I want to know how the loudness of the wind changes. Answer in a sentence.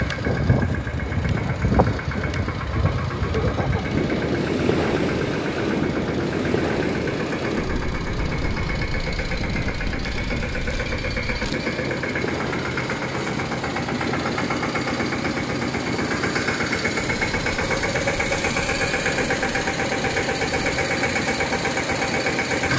The loudness of the wind goes down.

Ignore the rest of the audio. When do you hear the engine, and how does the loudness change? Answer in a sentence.
The engine can be heard from 0.0 to 22.7 s, getting louder.